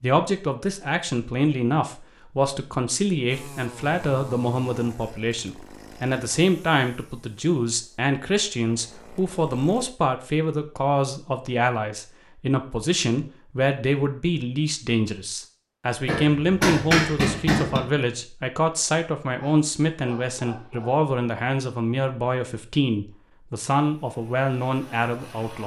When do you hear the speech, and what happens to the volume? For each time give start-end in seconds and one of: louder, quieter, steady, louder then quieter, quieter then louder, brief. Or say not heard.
0.0-25.6 steady.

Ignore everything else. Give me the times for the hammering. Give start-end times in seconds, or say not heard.
16.1-17.8.